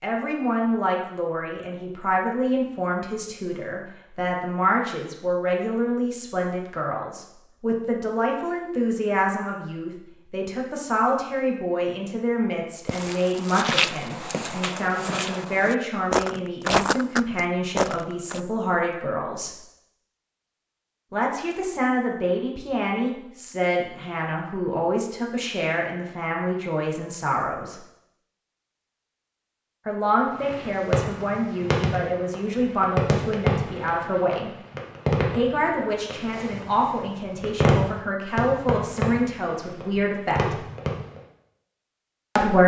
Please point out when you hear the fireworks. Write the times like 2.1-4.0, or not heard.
30.4-41.2.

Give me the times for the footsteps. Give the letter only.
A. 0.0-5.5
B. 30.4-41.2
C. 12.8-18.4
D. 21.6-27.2
C.